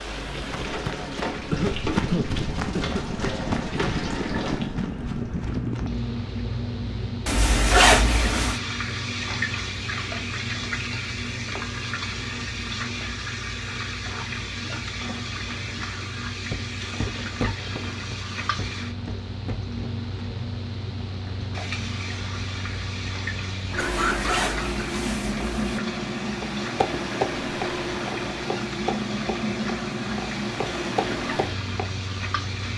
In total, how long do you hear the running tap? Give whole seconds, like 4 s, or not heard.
33 s.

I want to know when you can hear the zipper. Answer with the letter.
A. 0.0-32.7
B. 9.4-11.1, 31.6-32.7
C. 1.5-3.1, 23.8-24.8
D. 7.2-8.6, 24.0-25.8
D.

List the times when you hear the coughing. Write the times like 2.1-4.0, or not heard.
1.5-3.1, 23.8-24.8.